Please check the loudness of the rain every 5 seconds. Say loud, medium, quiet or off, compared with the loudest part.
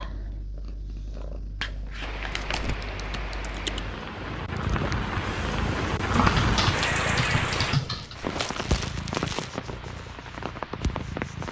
medium, loud, medium.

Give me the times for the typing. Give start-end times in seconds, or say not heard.
2.4-3.8, 6.2-8.2.